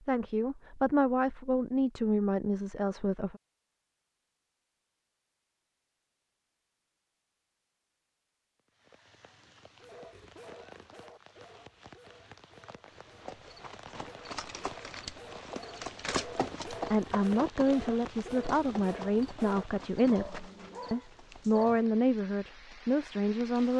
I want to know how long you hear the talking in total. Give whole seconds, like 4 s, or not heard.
10 s.